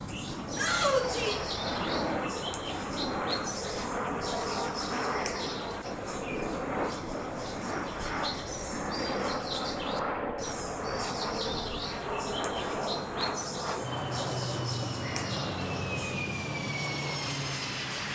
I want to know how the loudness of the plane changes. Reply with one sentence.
The volume of the plane stays about the same.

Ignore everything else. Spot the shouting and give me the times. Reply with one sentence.
The shouting can be heard from 0.6 to 1.4 s.